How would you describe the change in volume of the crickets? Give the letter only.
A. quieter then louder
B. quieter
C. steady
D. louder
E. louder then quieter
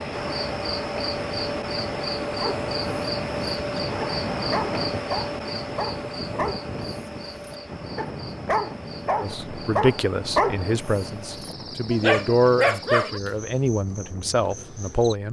B.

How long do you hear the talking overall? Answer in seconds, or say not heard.
6 s.